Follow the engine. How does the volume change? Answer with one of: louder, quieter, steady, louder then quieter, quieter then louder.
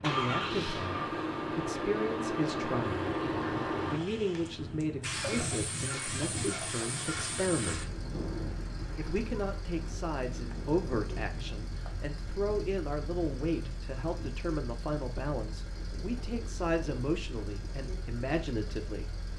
quieter.